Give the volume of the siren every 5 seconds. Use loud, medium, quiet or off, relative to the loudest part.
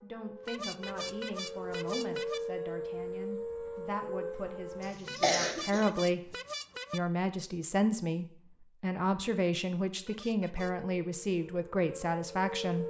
loud, off, loud.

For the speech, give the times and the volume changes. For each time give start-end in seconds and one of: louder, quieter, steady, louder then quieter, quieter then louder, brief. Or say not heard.
0.0-12.8 louder.